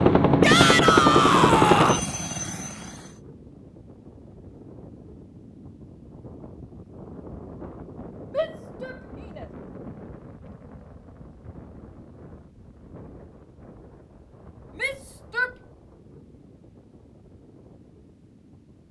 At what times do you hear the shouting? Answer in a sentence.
You can hear the shouting from 0.4 to 2.0 s, from 8.3 to 9.4 s and from 14.8 to 15.5 s.